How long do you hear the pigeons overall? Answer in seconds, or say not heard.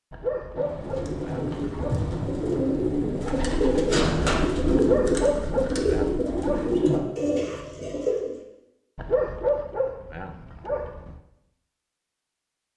8 s.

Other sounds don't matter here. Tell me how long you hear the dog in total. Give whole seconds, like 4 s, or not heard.
6 s.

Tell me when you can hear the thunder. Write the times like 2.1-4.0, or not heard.
0.6-4.4.